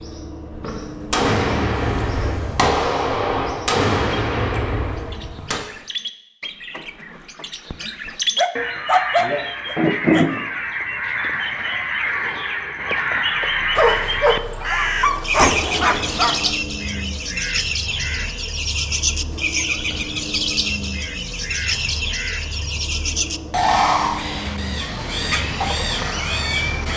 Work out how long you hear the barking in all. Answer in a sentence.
You can hear the barking for 5 seconds altogether.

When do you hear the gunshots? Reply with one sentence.
You can hear the gunshots from 1.1 to 5.6 s and from 15.3 to 16.4 s.